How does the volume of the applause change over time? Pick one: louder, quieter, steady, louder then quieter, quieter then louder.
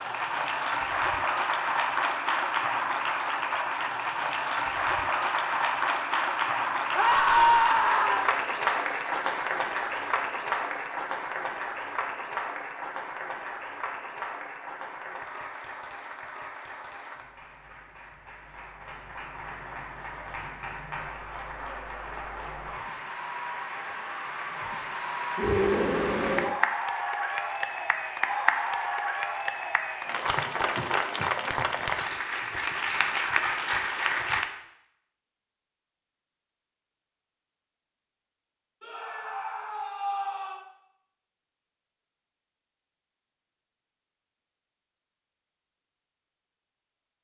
quieter then louder.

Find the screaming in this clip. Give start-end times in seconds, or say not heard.
7.0-8.3, 25.4-26.6, 38.8-40.6.